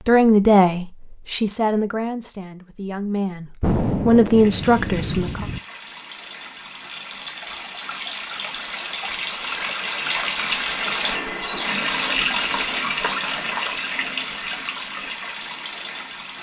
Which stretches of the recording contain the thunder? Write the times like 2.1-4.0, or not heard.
3.6-5.6.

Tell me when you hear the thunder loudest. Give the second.
4 s.